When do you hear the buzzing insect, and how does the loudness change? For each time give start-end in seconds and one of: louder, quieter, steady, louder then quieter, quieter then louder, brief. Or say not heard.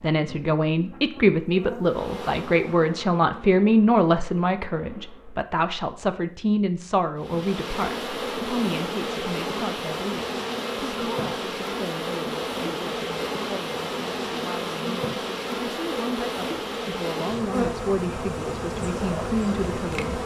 0.1-5.5 louder then quieter
7.2-20.2 steady.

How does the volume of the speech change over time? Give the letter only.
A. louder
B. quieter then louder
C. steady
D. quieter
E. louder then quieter
B.